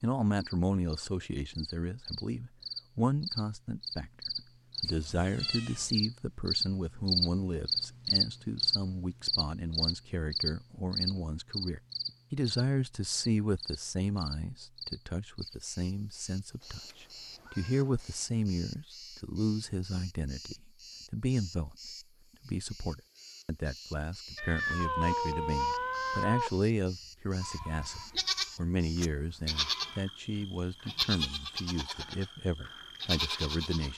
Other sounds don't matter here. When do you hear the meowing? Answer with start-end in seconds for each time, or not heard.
4.8-6.0, 16.6-18.2, 24.4-26.6.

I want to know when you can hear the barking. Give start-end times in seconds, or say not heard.
not heard.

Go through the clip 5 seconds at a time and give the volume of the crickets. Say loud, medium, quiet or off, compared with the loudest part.
medium, loud, medium, quiet, quiet, quiet, quiet.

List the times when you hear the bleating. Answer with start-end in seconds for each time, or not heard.
27.4-33.9.